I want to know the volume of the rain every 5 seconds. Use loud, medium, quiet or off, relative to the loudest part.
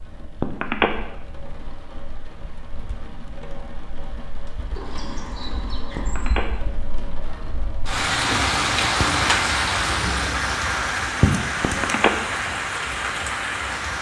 quiet, loud, loud.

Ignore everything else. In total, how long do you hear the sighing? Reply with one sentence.
The sighing can be heard for 2 seconds in total.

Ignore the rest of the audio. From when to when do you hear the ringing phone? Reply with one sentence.
You can hear the ringing phone from 0.4 to 0.9 s, from 6.0 to 6.5 s and from 11.6 to 12.1 s.